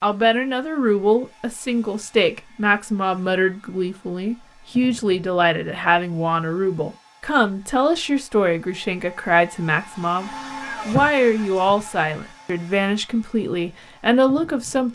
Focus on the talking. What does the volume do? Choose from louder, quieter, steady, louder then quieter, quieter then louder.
steady.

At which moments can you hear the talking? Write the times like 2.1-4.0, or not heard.
0.0-14.9.